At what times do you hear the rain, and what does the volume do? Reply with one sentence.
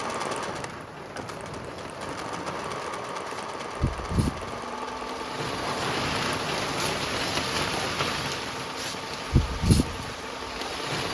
The rain can be heard from 0.0 to 11.0 s, getting louder.